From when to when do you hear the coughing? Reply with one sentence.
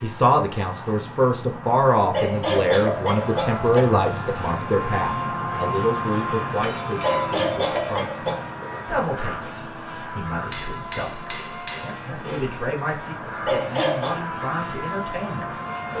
The coughing can be heard from 2.1 to 3.9 s, from 7.0 to 8.4 s and from 13.4 to 14.2 s.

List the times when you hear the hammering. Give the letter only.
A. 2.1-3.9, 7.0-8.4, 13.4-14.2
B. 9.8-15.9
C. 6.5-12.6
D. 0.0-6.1
C.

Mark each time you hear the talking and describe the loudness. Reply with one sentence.
You can hear the talking from 0.0 to 15.9 s, getting quieter.